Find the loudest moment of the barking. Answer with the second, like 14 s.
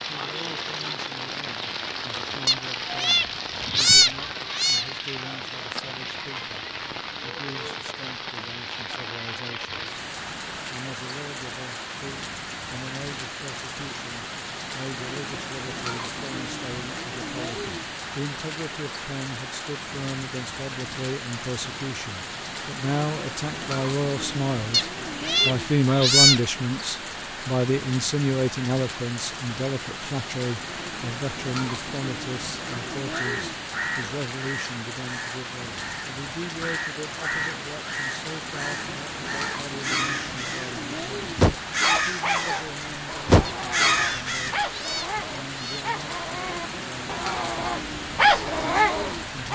48 s.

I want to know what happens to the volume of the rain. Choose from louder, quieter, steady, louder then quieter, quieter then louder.
steady.